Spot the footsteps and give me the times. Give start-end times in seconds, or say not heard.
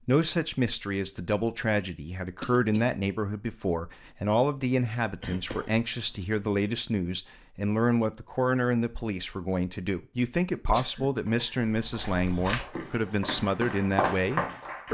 11.6-14.8.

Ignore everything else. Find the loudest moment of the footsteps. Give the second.
14 s.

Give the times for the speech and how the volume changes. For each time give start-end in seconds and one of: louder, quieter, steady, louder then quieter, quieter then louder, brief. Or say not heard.
0.1-14.8 steady.